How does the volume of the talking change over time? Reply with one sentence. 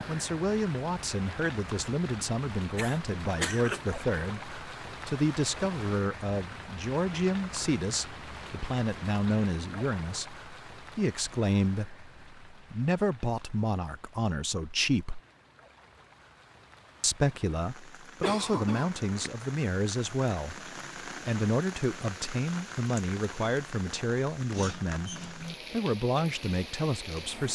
The loudness of the talking stays about the same.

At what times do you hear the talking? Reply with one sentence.
You can hear the talking from 0.1 to 15.2 s and from 17.0 to 27.5 s.